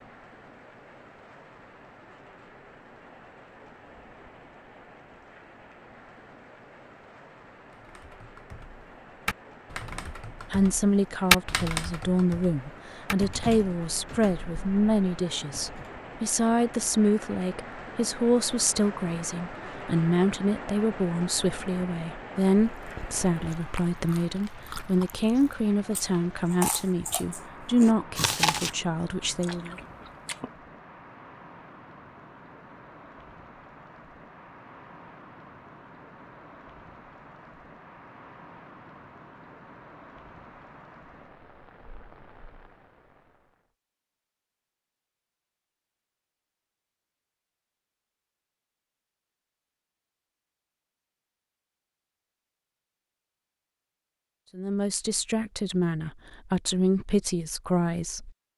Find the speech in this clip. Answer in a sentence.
You can hear the speech from 9.9 to 29.8 s and from 54.5 to 58.3 s.